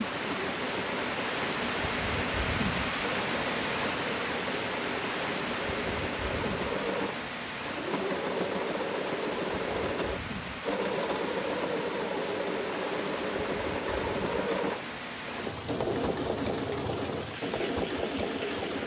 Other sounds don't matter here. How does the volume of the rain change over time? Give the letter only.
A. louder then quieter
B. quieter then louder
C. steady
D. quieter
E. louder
D.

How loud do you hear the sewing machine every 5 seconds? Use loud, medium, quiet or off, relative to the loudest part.
medium, loud, loud, loud.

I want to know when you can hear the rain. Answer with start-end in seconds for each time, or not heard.
0.0-18.8.